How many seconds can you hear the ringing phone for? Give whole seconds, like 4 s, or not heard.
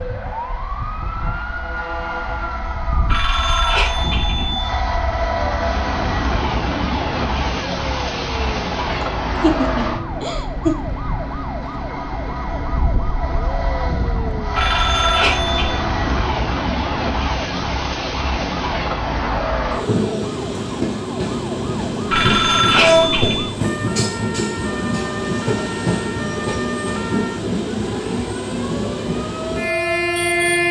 4 s.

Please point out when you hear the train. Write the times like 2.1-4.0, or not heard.
0.0-30.6.